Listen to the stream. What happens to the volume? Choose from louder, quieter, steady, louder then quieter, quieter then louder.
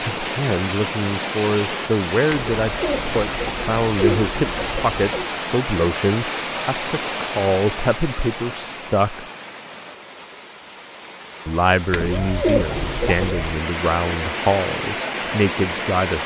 quieter then louder.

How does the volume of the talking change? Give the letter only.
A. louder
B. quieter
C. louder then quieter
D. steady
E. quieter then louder
D.